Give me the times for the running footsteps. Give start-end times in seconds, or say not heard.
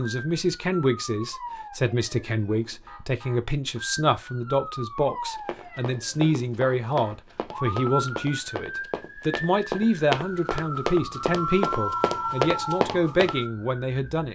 5.3-13.4.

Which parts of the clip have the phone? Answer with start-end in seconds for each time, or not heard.
11.1-12.8.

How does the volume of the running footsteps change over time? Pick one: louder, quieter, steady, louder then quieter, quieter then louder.
louder.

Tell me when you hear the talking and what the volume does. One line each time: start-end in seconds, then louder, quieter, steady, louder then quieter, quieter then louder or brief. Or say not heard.
0.0-14.3 steady.